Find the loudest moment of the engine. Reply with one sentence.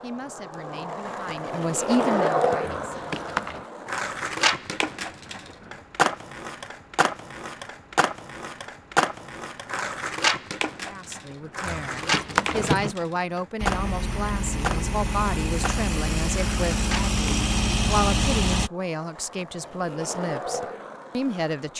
The loudest moment of the engine is at 18 seconds.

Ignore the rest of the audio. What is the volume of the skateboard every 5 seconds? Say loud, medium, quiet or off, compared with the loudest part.
loud, loud, loud, medium, medium.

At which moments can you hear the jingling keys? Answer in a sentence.
The jingling keys can be heard from 2.7 to 3.6 s and from 11.7 to 12.9 s.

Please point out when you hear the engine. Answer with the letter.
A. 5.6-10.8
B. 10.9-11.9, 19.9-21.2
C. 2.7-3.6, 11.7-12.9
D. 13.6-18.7
D.